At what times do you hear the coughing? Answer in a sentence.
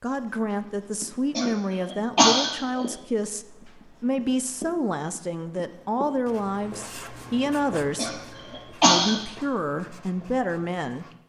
You can hear the coughing from 1.4 to 2.9 s and from 8.0 to 9.2 s.